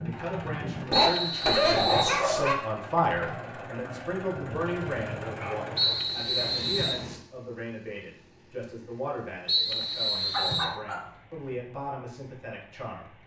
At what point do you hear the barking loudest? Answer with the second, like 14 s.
2 s.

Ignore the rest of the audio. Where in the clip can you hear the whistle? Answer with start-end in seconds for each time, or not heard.
0.9-2.2, 5.8-7.0, 9.4-10.8.